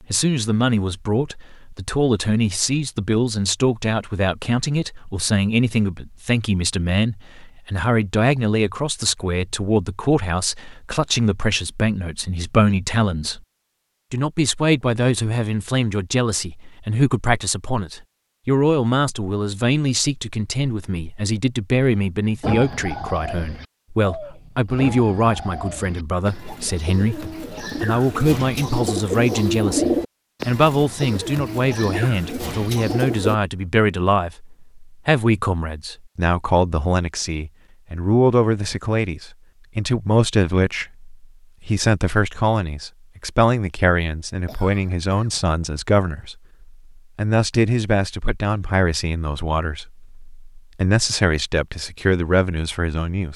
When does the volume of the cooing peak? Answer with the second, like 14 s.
30 s.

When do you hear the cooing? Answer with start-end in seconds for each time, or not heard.
22.4-33.4.